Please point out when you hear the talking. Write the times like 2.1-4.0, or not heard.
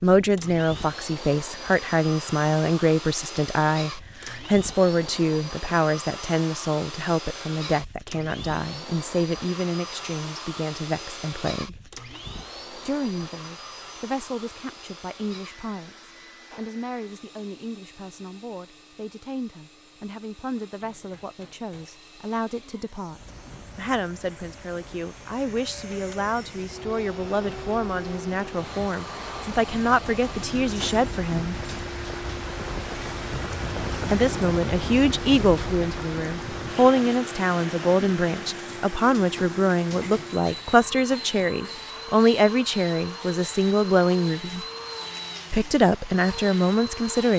0.0-11.8, 12.8-31.6, 34.1-44.6, 45.5-47.3.